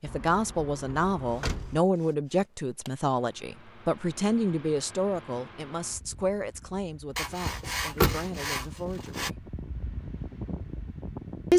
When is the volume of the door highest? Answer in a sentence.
The volume of the door peaks at 8 seconds.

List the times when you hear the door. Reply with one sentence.
The door can be heard from 0.1 to 1.8 s and from 7.5 to 8.2 s.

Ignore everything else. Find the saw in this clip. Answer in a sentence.
The saw can be heard from 1.3 to 3.0 s and from 7.2 to 9.3 s.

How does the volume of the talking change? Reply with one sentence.
The volume of the talking goes down.